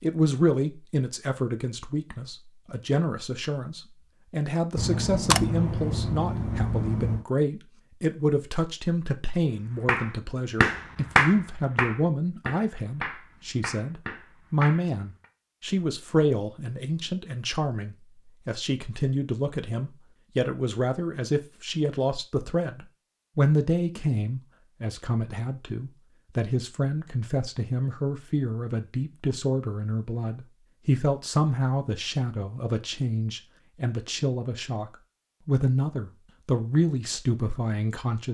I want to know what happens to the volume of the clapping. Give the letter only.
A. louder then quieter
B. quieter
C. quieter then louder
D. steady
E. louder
B.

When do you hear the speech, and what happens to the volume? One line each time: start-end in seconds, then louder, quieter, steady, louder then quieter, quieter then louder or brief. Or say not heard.
0.0-38.2 steady.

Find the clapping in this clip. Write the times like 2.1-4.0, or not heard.
9.8-15.2.